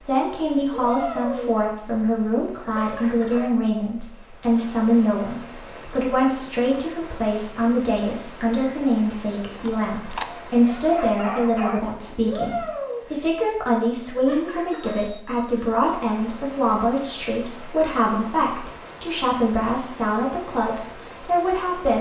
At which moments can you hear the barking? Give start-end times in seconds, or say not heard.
9.6-11.8.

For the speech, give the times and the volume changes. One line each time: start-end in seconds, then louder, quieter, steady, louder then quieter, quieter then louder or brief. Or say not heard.
0.0-21.9 steady.